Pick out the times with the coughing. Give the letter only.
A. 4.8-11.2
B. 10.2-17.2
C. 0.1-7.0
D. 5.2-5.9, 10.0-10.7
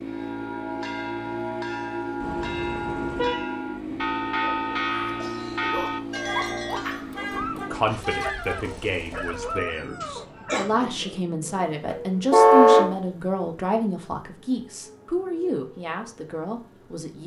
D.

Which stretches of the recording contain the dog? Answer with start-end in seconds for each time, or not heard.
4.8-11.2.